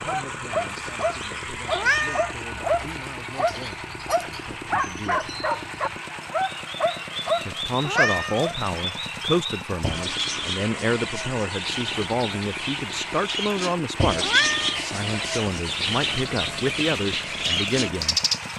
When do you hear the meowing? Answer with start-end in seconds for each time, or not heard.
1.7-2.4, 7.8-8.4, 14.2-14.8.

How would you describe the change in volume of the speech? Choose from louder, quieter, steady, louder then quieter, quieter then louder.
louder.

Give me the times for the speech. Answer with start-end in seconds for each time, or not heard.
0.0-5.3, 7.5-18.2.